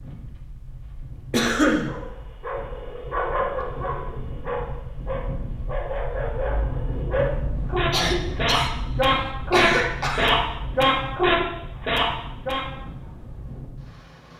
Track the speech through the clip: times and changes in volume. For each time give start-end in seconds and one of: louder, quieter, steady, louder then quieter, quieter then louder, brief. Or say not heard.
not heard.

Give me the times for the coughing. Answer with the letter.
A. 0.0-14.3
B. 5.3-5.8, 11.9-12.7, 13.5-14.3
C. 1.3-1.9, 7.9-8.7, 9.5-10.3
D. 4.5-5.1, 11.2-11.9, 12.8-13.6
C.